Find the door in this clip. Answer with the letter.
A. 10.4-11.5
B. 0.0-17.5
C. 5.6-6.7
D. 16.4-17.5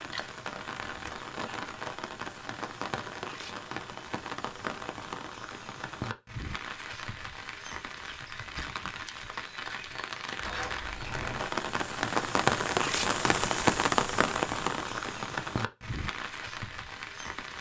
A.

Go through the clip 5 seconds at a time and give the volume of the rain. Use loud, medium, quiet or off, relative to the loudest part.
medium, medium, loud, medium.